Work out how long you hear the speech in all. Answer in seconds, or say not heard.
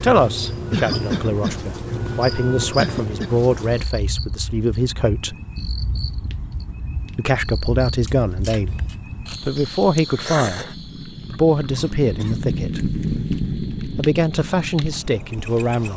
13 s.